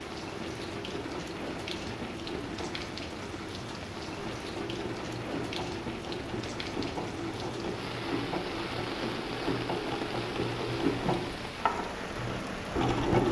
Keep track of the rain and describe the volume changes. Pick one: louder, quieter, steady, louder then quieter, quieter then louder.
steady.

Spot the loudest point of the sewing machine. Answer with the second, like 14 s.
13 s.